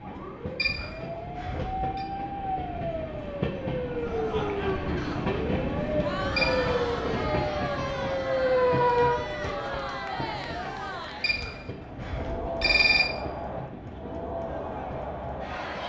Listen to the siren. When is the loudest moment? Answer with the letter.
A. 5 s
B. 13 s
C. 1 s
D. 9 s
D.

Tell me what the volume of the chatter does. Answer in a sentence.
The volume of the chatter stays about the same.